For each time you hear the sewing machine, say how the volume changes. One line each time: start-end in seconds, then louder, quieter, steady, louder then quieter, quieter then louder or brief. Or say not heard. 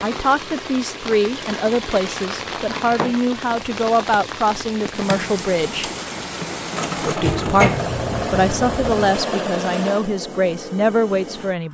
5.0-11.6 louder then quieter.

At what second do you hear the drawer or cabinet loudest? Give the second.
8 s.